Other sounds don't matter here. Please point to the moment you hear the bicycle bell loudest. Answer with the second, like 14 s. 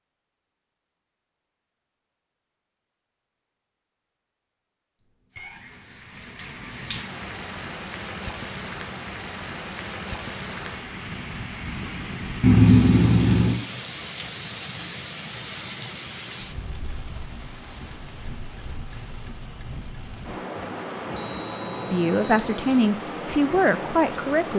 13 s.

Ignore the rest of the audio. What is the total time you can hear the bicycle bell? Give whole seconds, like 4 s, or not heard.
4 s.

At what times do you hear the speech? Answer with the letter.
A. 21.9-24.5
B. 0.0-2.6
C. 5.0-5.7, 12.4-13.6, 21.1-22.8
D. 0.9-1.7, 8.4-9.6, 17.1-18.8
A.